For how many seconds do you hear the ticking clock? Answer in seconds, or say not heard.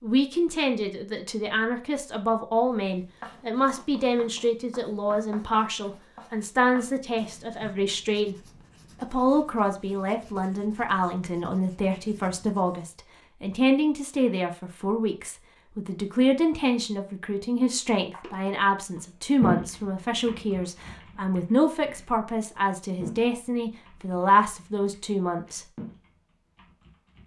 not heard.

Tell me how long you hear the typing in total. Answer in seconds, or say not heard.
9 s.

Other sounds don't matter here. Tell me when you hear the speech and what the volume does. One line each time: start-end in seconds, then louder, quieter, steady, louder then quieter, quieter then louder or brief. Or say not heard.
0.0-8.3 steady
9.0-25.6 steady.